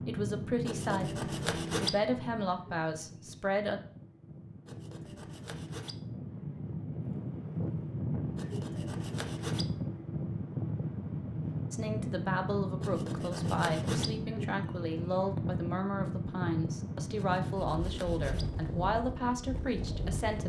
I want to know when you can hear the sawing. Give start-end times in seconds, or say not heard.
0.7-1.9, 4.7-6.0, 8.3-9.7, 12.8-14.1, 17.1-18.4.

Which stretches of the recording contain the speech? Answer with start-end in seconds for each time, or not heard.
0.0-3.8, 11.7-20.4.